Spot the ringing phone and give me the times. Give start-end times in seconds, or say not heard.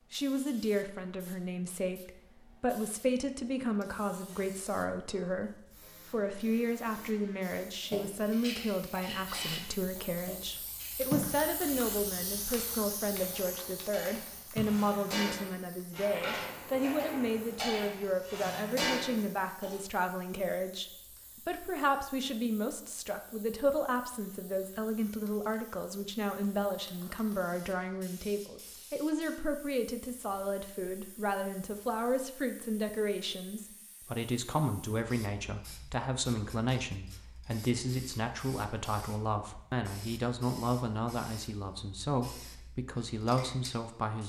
not heard.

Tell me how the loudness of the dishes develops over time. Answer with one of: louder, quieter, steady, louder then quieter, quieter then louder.
quieter then louder.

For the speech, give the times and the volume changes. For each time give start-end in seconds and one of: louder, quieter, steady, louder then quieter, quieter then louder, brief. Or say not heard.
0.1-44.2 steady.